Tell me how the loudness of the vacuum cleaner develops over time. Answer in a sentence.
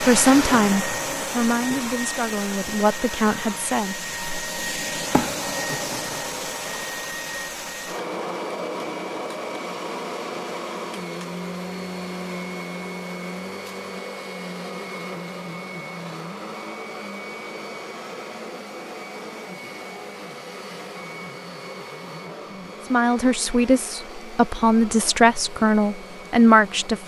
The loudness of the vacuum cleaner goes down.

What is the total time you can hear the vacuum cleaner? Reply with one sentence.
The vacuum cleaner can be heard for 27 seconds in total.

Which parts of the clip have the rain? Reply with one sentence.
You can't hear the rain here.